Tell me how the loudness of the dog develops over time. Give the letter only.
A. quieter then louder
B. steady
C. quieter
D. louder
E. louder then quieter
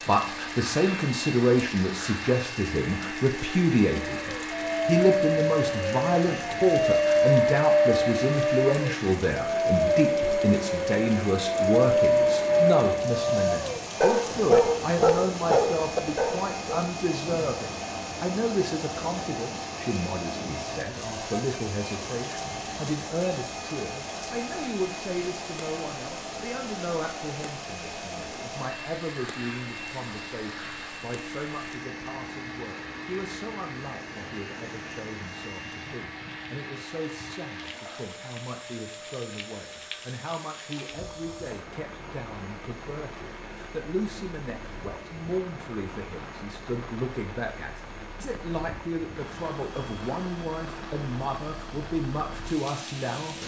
B.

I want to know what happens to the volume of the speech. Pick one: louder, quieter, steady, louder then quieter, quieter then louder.
quieter then louder.